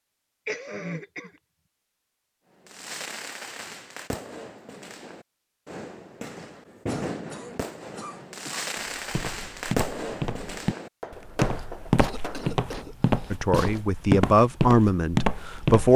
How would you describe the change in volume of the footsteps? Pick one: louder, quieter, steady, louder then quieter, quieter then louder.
louder.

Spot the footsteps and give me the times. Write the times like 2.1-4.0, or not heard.
8.8-15.9.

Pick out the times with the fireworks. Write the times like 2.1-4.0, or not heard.
2.6-12.5.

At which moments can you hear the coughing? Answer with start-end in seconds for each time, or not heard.
0.5-1.3, 6.8-8.7, 11.6-13.8.